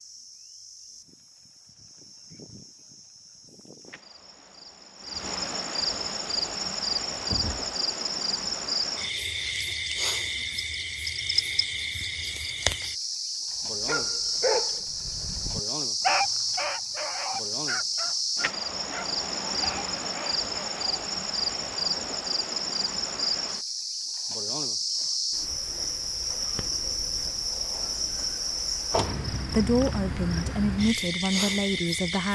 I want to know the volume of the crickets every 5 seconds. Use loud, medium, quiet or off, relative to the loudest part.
quiet, loud, loud, loud, loud, loud, loud.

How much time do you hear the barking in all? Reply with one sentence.
You can hear the barking for 7 seconds altogether.